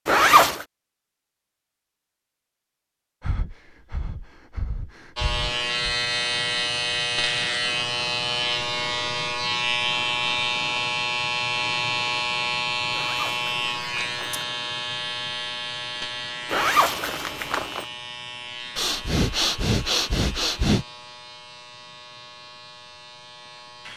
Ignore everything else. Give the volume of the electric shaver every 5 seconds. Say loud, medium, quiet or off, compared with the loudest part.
off, loud, loud, medium, quiet.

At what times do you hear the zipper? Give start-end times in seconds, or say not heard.
0.1-0.7, 12.9-14.4, 16.5-17.9.